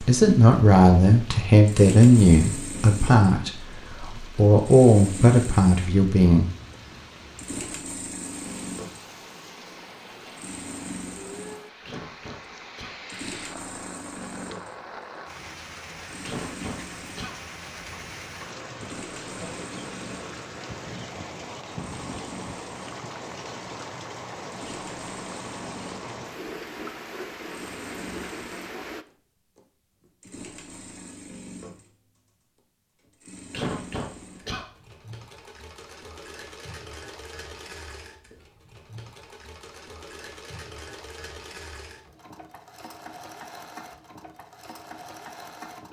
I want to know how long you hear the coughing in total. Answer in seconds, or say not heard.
3 s.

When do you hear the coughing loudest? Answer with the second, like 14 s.
34 s.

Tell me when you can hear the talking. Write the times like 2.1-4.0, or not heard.
0.0-6.5.